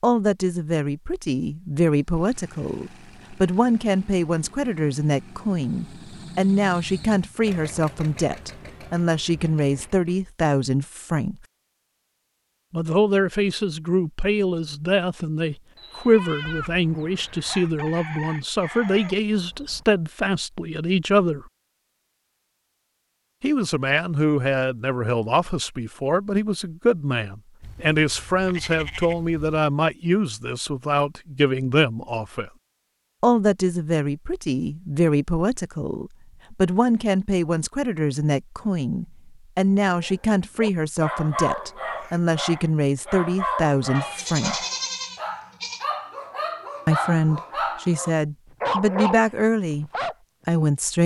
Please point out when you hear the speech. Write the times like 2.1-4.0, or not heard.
0.0-11.3, 12.7-21.4, 23.4-32.5, 33.2-44.5, 46.9-51.0.